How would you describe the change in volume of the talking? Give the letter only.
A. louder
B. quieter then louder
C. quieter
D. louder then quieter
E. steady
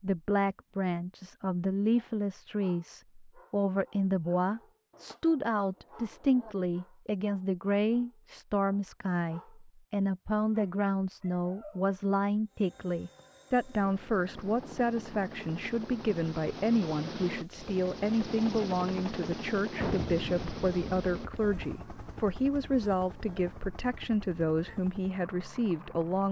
E.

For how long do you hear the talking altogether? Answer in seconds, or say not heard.
26 s.